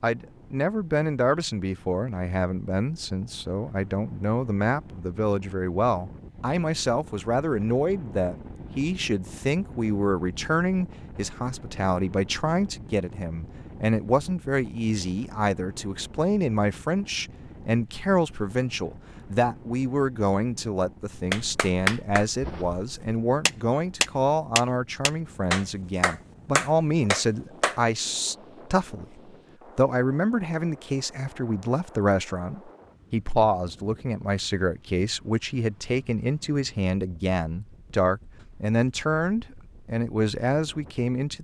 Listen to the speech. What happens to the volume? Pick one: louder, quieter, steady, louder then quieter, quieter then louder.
steady.